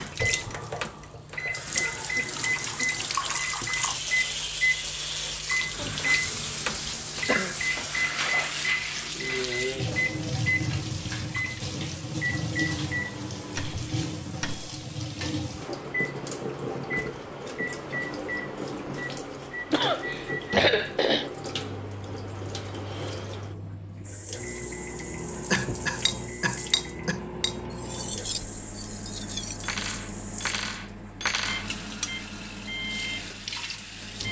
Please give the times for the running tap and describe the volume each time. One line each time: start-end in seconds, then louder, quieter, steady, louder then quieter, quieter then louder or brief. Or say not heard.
0.0-34.2 quieter.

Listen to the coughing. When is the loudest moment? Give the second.
21 s.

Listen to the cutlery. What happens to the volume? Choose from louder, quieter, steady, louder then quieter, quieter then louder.
quieter then louder.